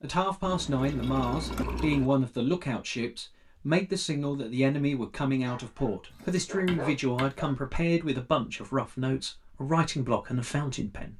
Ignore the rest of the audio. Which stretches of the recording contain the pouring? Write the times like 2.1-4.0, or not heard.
0.5-2.1.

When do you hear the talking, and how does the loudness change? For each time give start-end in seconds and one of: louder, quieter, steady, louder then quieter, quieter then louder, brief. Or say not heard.
0.0-11.1 steady.